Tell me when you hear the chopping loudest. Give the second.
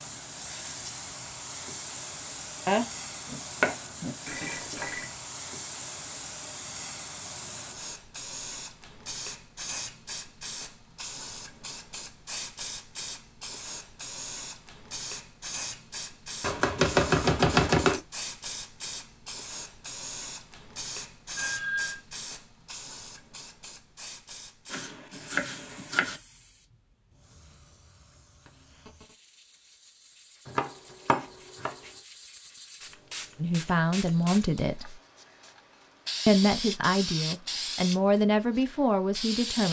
18 s.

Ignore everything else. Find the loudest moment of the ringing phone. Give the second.
22 s.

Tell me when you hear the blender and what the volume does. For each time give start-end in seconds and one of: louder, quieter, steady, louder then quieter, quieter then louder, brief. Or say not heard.
not heard.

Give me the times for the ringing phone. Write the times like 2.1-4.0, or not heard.
4.2-5.0, 21.4-22.0, 28.4-29.1.